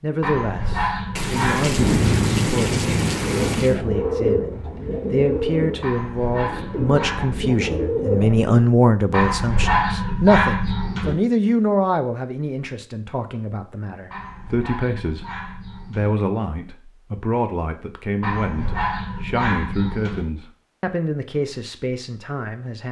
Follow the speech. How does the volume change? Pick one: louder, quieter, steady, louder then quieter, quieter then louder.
louder then quieter.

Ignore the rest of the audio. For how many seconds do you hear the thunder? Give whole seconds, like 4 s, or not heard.
3 s.